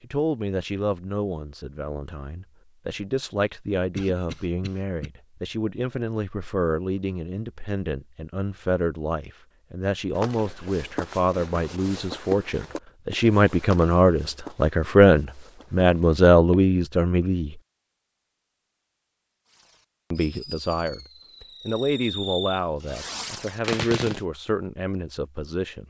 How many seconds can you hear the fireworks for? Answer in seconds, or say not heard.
5 s.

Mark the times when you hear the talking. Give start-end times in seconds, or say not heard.
0.0-17.6, 20.1-25.8.